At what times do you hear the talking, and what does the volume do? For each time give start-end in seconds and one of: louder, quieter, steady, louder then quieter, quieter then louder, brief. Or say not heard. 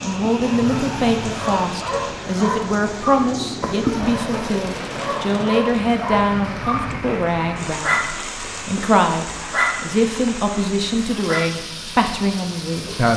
0.0-13.1 steady.